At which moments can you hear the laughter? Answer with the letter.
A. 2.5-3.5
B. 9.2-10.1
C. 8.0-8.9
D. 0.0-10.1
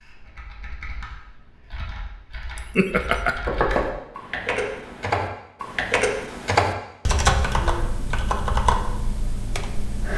A.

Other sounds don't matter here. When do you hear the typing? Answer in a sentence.
The typing can be heard from 0.0 to 10.1 s.